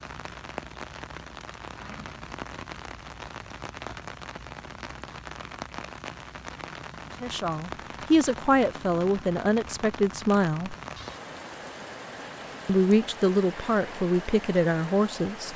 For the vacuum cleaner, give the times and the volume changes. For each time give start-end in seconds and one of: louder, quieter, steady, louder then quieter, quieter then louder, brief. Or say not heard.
not heard.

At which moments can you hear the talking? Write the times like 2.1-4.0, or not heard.
7.2-10.8, 12.7-15.5.